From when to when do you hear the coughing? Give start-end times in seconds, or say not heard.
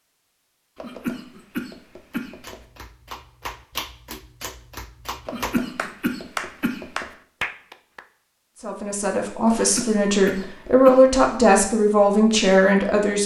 0.8-2.5, 5.2-7.0, 9.6-11.2.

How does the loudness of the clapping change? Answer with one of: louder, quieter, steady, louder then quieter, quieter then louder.
louder.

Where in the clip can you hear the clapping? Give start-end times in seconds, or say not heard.
2.1-8.1.